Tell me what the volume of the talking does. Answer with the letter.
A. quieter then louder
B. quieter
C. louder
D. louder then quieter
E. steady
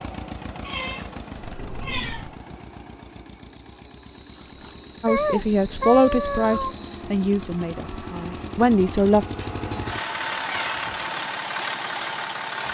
A.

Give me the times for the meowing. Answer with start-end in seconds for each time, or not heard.
0.7-2.5, 5.0-6.8, 9.4-11.1.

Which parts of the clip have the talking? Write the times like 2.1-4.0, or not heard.
5.0-9.2.